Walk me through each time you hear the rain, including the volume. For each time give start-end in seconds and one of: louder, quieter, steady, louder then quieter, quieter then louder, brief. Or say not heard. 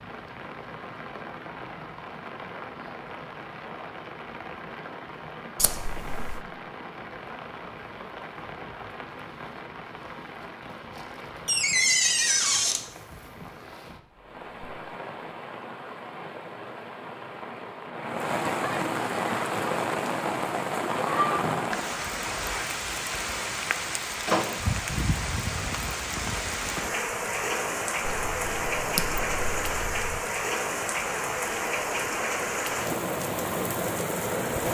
0.0-34.6 louder.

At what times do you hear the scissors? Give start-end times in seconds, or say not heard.
5.5-6.4, 28.0-30.2.